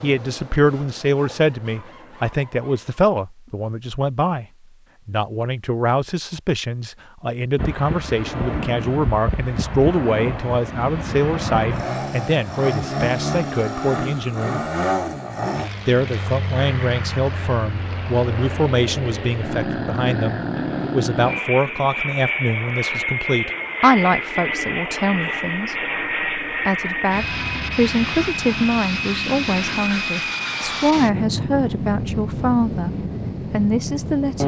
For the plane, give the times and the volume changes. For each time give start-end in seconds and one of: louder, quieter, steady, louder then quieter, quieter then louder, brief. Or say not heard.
7.5-34.4 steady.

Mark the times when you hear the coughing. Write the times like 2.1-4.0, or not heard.
not heard.